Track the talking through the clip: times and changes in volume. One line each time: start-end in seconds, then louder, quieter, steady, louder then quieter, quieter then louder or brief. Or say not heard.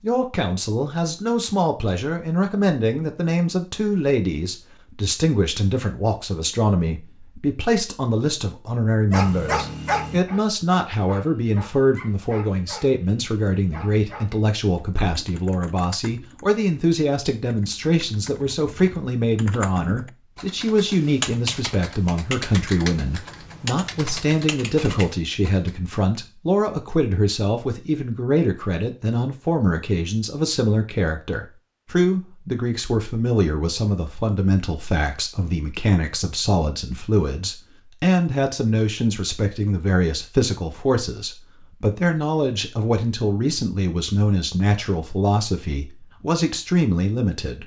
0.0-47.6 steady.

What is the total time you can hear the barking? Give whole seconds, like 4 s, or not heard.
5 s.